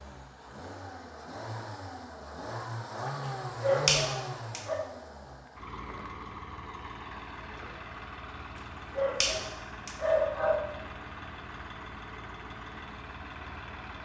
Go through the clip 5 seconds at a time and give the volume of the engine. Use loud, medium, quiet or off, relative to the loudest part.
loud, medium, medium.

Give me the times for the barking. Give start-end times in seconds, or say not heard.
3.6-4.8, 8.9-10.6.